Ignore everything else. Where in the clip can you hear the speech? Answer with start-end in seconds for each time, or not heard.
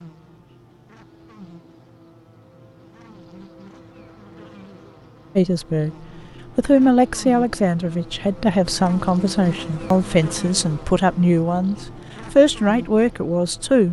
5.3-6.0, 6.5-13.8.